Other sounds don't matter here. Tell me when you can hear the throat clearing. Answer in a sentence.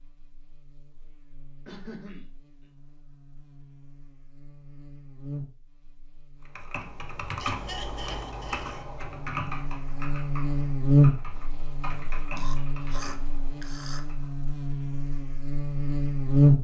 The throat clearing can be heard from 1.6 to 2.2 s, from 7.4 to 8.8 s and from 12.3 to 14.1 s.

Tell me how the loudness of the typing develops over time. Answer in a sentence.
The volume of the typing goes down.